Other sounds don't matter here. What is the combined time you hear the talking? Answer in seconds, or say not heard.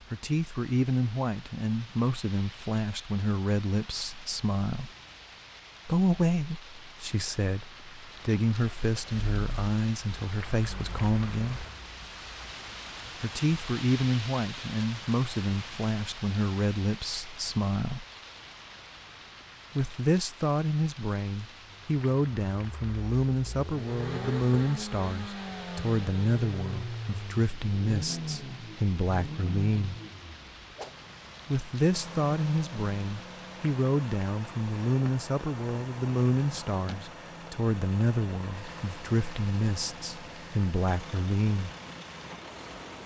36 s.